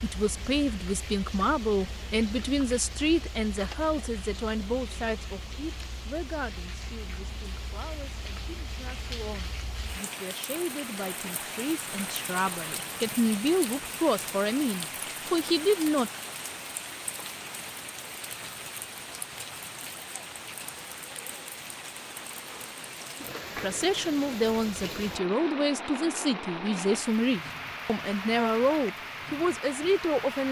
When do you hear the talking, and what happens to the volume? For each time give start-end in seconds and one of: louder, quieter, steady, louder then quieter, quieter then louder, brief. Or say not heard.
0.0-16.1 quieter then louder
23.6-30.4 steady.